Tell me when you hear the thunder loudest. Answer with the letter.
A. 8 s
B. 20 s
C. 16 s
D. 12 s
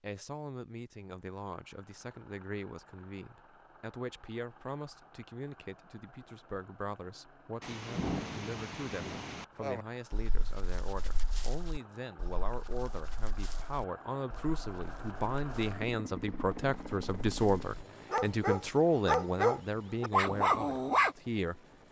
A.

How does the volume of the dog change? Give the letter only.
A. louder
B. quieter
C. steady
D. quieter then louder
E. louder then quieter
D.